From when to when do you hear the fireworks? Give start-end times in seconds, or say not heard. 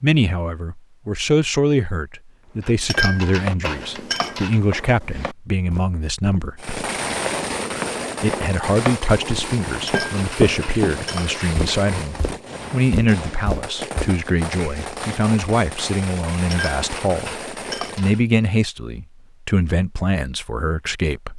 6.5-18.2.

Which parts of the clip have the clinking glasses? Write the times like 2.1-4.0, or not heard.
2.6-4.6, 9.7-11.4, 16.5-18.2.